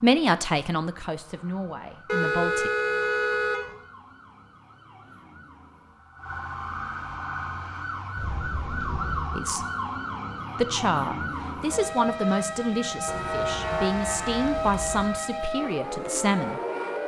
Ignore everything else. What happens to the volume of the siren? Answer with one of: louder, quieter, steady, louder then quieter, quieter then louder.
louder.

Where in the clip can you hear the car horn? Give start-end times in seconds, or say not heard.
2.0-3.7, 8.2-9.3, 13.1-15.1.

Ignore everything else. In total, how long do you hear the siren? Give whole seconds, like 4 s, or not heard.
17 s.